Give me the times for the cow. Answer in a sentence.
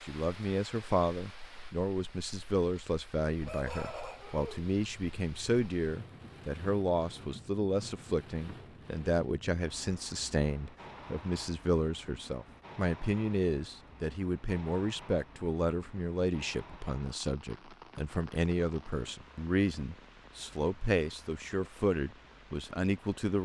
You can't hear the cow here.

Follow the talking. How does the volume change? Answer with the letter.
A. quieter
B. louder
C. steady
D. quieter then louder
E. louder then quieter
C.